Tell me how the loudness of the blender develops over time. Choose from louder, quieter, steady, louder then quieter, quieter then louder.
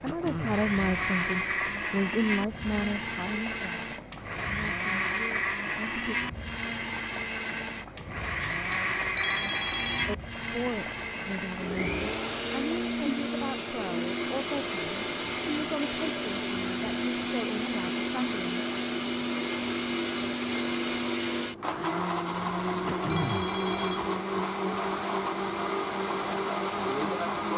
steady.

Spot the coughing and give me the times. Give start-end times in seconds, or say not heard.
0.1-0.7, 22.9-23.4.